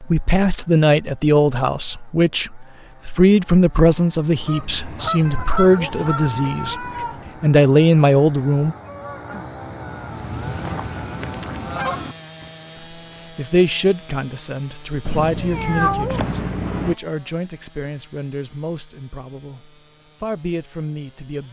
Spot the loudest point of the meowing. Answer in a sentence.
The loudest moment of the meowing is at 16 seconds.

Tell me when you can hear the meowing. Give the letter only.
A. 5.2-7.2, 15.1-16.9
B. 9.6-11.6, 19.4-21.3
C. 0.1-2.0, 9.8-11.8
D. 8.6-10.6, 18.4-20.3
A.